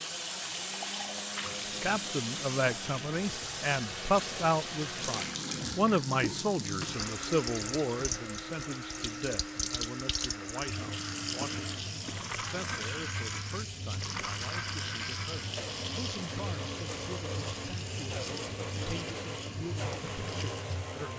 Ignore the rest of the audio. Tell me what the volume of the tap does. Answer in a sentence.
The volume of the tap stays about the same.